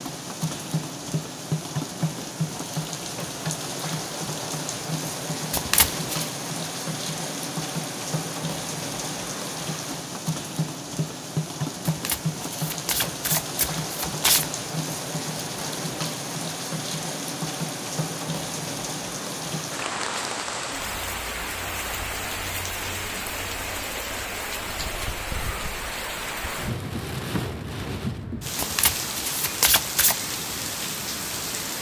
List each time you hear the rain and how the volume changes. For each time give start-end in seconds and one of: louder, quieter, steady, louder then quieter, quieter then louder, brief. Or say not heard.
0.0-31.7 steady.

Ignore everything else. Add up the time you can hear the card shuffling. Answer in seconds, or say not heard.
5 s.